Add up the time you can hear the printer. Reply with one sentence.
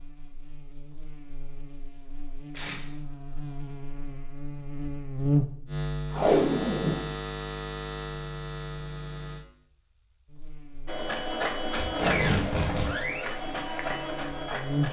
You can hear the printer for 4 seconds altogether.